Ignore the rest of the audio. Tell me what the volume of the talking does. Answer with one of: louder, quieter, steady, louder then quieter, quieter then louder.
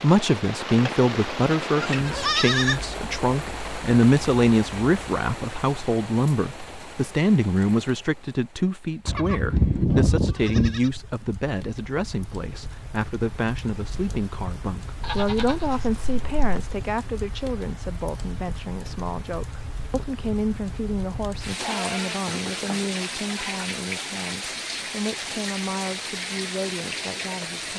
quieter.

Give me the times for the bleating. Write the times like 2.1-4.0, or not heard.
1.8-2.9, 9.1-10.9, 15.0-16.8, 21.6-23.6.